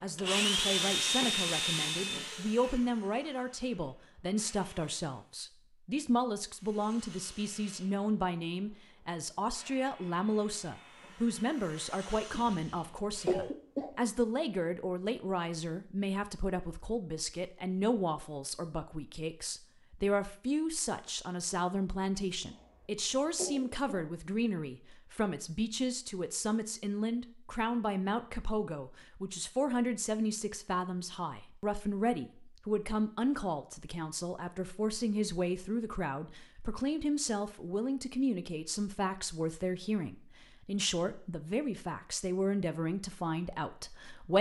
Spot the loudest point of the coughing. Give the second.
13 s.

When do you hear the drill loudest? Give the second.
1 s.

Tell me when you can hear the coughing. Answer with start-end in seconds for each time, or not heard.
12.3-13.9, 22.4-24.1.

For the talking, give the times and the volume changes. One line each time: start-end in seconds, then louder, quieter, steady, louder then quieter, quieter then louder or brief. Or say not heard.
0.0-44.3 steady.